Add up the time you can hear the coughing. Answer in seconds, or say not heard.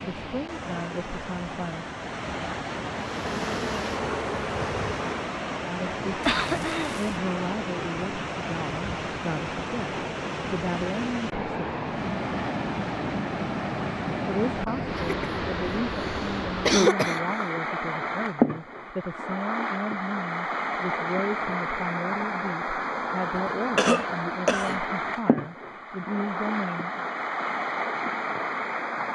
4 s.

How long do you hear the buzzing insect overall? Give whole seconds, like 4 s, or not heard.
2 s.